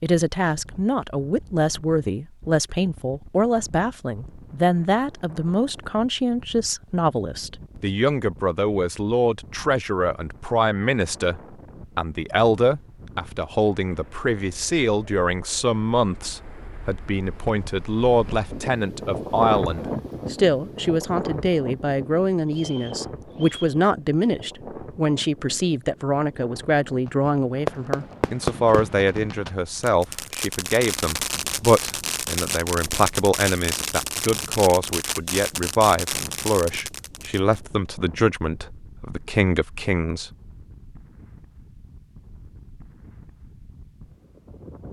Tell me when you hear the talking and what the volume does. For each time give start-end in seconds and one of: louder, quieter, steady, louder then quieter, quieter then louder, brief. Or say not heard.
0.0-40.3 steady.